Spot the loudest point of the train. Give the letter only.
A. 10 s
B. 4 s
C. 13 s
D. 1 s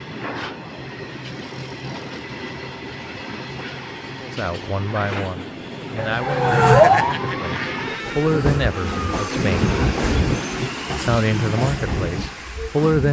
A.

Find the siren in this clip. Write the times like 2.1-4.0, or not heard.
6.0-9.3.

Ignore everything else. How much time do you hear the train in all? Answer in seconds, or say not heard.
13 s.